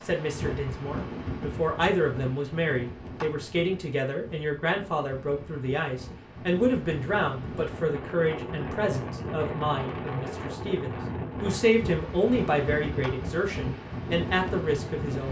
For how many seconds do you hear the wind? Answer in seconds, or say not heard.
15 s.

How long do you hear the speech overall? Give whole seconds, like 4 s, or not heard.
15 s.